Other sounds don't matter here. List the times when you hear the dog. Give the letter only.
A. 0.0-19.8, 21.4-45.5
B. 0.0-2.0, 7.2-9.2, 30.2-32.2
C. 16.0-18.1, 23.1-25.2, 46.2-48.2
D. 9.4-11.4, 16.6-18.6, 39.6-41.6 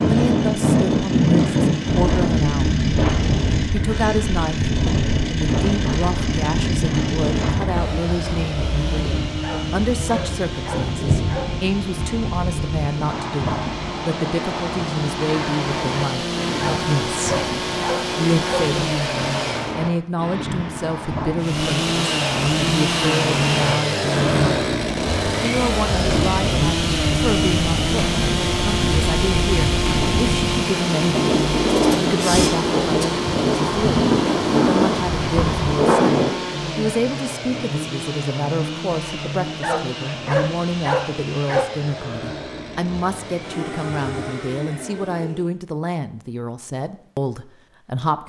D.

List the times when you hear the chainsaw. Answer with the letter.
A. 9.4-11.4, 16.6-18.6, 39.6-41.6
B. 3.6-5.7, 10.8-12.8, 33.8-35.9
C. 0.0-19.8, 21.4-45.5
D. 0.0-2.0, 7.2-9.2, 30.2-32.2
C.